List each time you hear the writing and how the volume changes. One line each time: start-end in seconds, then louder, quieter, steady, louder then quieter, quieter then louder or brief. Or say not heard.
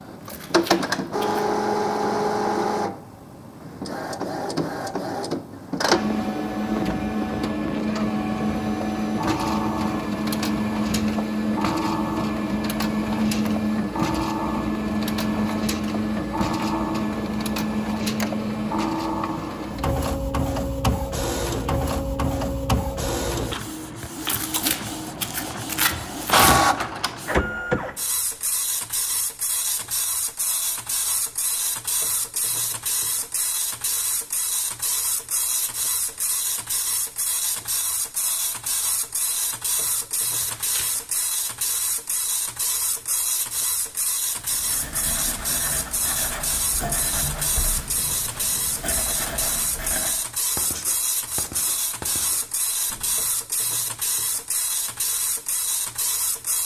44.4-53.3 steady.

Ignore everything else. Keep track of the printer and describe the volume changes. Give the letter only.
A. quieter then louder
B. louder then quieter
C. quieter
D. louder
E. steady
C.